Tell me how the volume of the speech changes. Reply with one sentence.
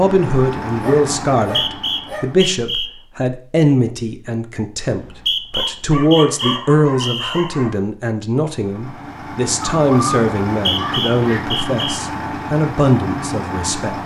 The volume of the speech stays about the same.